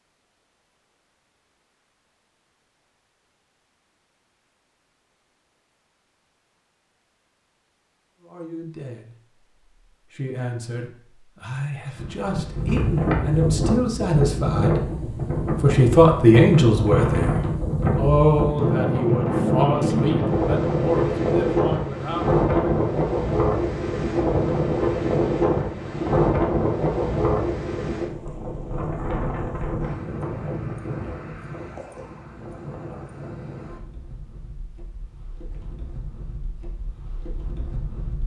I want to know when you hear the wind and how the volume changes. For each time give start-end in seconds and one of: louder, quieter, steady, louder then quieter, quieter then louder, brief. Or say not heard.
11.9-38.2 quieter.